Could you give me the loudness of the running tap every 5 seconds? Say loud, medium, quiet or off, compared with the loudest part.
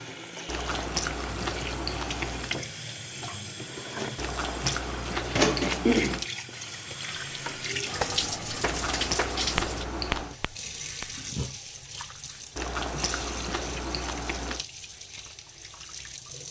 medium, loud, medium, quiet.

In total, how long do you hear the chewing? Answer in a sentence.
You can hear the chewing for 8 seconds altogether.